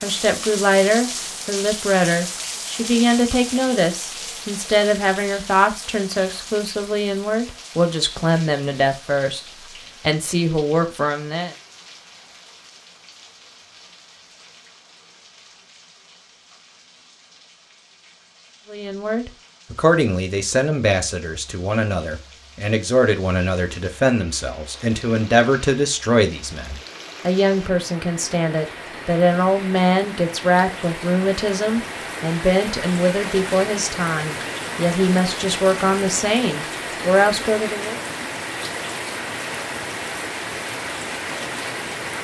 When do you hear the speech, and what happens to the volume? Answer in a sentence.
You can hear the speech from 0.0 to 11.6 s, at a steady volume; and from 18.7 to 38.0 s, at a steady volume.